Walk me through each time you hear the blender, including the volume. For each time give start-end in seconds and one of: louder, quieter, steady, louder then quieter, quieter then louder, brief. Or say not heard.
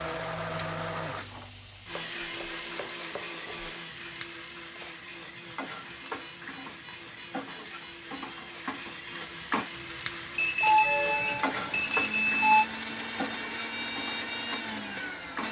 0.0-15.4 quieter then louder.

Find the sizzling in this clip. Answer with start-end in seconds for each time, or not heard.
0.0-15.4.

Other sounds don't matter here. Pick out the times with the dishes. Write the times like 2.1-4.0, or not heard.
not heard.